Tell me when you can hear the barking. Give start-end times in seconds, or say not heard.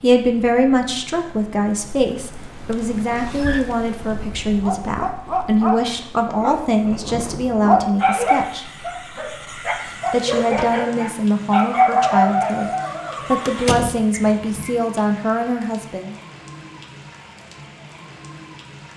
4.0-14.7.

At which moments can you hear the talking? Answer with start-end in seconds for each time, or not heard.
0.0-8.7, 9.8-16.1.